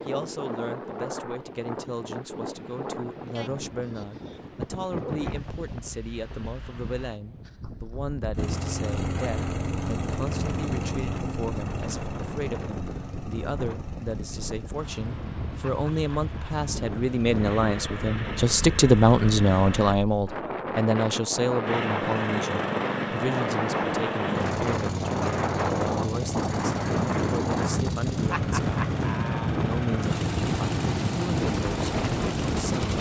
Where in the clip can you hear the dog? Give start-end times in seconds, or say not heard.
not heard.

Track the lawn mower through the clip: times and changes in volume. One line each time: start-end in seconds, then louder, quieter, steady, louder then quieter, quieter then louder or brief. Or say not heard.
8.3-20.0 quieter then louder
21.6-32.9 steady.